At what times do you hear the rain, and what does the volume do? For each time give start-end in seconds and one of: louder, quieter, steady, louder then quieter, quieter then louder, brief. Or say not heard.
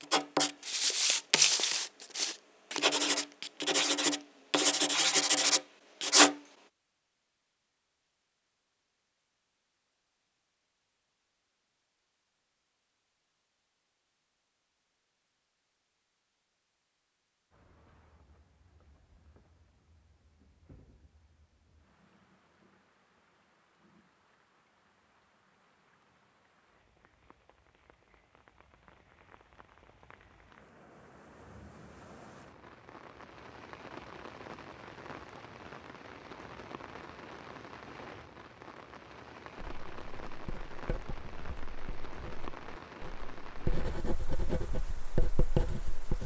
17.5-46.2 louder.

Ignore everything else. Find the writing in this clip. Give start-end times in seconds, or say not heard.
0.0-6.4, 39.5-46.2.